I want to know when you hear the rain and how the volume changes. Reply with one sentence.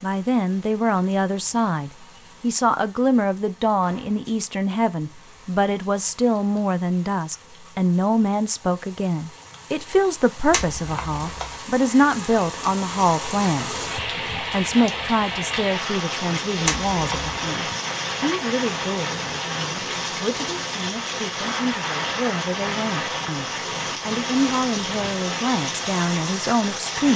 You can hear the rain from 0.0 to 27.1 s, getting louder.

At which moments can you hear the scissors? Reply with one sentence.
You can hear the scissors from 10.5 to 11.4 s and from 16.6 to 17.3 s.